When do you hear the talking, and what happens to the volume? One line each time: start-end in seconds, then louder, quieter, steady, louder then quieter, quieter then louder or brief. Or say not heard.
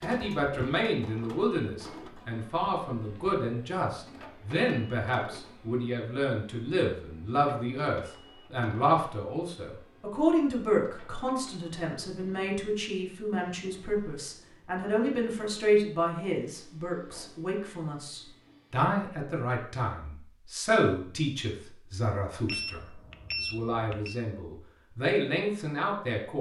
0.0-26.3 steady.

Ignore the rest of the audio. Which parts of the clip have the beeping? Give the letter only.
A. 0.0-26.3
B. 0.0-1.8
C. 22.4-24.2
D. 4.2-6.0
C.